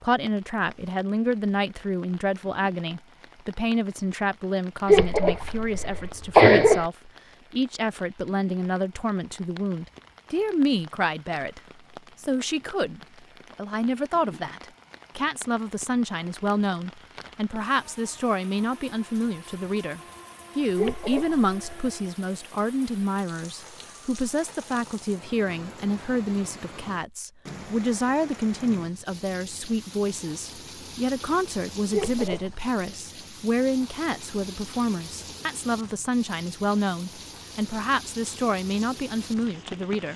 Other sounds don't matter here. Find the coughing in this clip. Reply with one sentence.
You can hear the coughing from 4.8 to 6.8 s, from 20.8 to 22.0 s and from 31.9 to 32.6 s.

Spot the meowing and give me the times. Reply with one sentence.
The meowing can't be heard in this clip.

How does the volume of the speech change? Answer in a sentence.
The loudness of the speech stays about the same.